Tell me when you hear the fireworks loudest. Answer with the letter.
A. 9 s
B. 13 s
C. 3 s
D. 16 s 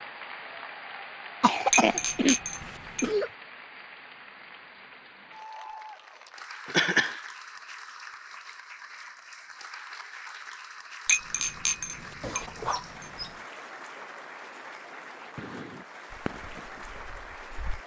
D.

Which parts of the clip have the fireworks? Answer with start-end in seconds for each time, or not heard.
15.3-17.8.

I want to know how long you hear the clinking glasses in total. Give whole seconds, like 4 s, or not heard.
4 s.